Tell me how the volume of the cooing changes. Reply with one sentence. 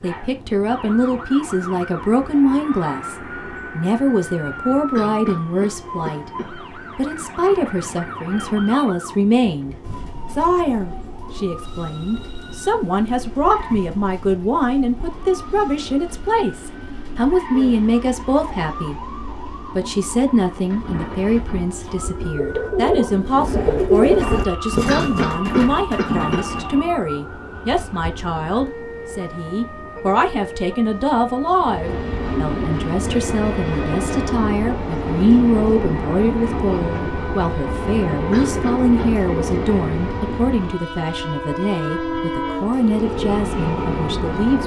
The loudness of the cooing goes up, then down.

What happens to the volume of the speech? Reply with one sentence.
The loudness of the speech stays about the same.